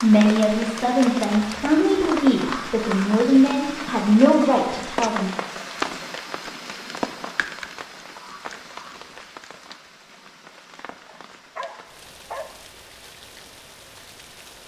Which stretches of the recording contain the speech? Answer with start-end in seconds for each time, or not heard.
0.0-5.3.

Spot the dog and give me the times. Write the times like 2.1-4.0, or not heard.
11.1-12.6.